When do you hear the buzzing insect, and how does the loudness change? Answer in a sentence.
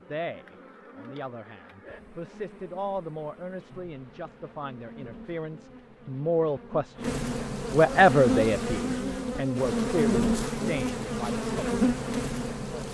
You can hear the buzzing insect from 0.0 to 12.8 s, getting louder.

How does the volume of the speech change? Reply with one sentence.
The loudness of the speech goes up, then down.